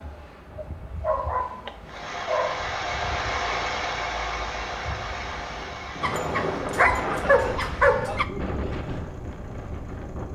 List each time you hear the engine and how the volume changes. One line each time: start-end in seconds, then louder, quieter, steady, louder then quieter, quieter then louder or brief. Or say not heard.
1.9-10.3 quieter.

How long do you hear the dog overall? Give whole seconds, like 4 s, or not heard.
4 s.